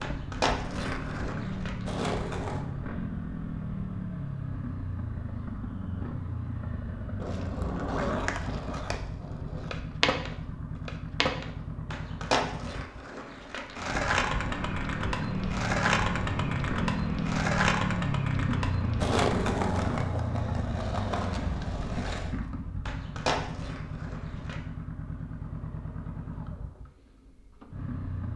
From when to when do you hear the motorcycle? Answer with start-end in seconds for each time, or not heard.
0.0-28.3.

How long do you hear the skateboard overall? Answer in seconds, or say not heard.
20 s.